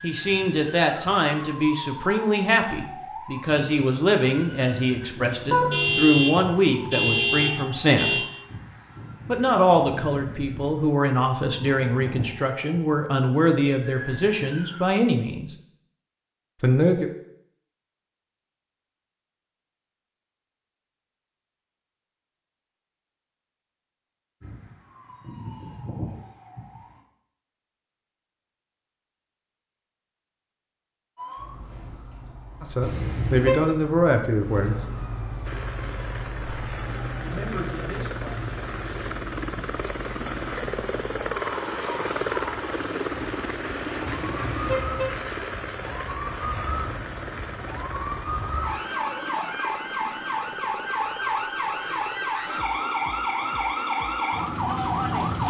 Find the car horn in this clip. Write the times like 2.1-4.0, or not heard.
5.5-8.2, 32.8-33.5, 44.0-45.2.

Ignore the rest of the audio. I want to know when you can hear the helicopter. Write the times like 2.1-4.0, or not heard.
35.5-55.4.